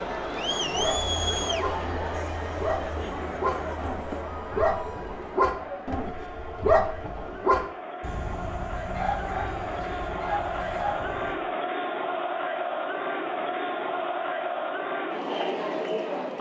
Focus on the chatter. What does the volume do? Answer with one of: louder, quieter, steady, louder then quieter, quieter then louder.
quieter then louder.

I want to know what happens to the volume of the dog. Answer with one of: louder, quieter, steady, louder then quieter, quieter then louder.
louder then quieter.